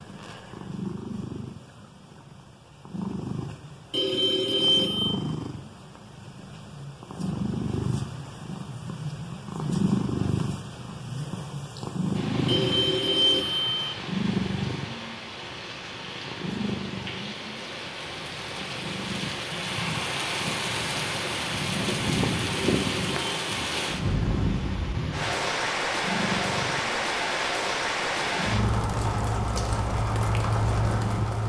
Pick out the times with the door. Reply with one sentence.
The door can't be heard in this clip.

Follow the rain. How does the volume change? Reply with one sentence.
The volume of the rain goes up.